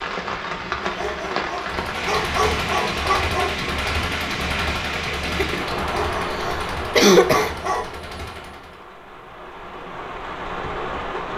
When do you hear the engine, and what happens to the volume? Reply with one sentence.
The engine can be heard from 1.6 to 8.8 s, getting quieter.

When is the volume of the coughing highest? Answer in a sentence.
The loudest moment of the coughing is at 7 seconds.